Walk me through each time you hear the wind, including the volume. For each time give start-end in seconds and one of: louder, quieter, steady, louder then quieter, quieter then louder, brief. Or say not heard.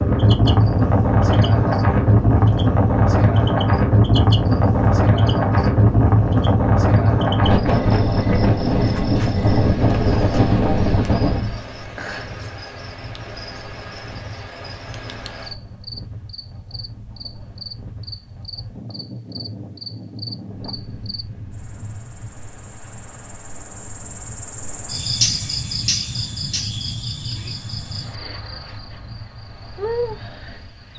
0.0-30.9 quieter.